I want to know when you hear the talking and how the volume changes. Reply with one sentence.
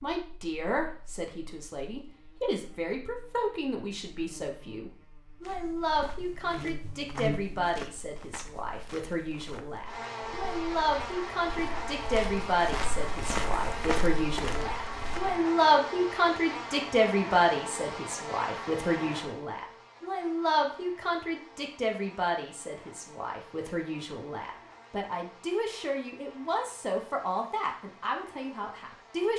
You can hear the talking from 0.0 to 29.3 s, getting louder then quieter.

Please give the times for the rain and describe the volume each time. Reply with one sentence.
The rain can't be heard in this clip.